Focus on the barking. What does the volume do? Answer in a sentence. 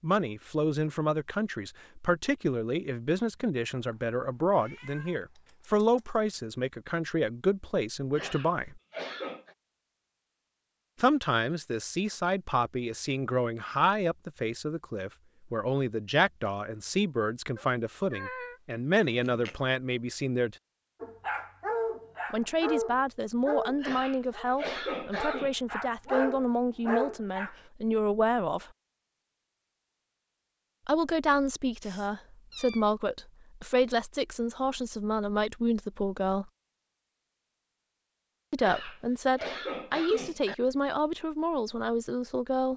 The loudness of the barking goes down, then up.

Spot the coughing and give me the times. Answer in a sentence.
The coughing can be heard from 8.2 to 9.6 s, from 23.8 to 25.6 s and from 38.6 to 40.5 s.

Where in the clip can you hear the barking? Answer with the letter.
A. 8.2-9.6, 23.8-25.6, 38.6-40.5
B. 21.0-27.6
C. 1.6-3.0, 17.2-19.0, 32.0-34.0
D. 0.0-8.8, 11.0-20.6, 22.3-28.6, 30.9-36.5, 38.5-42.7
B.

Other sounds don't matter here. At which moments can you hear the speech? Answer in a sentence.
The speech can be heard from 0.0 to 8.8 s, from 11.0 to 20.6 s, from 22.3 to 28.6 s, from 30.9 to 36.5 s and from 38.5 to 42.7 s.